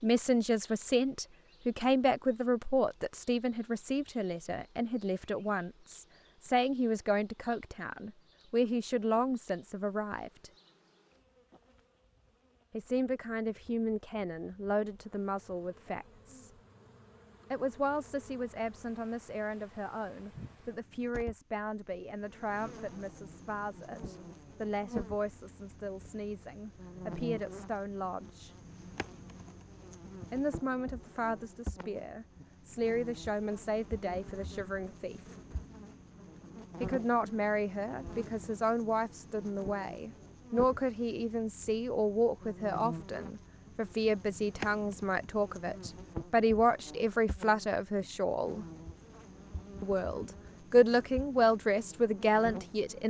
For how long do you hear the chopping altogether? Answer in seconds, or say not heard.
not heard.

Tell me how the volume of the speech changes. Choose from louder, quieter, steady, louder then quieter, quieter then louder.
quieter then louder.